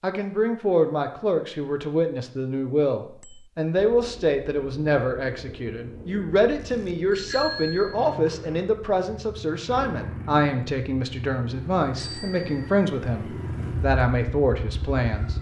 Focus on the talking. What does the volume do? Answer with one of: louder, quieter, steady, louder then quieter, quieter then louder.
steady.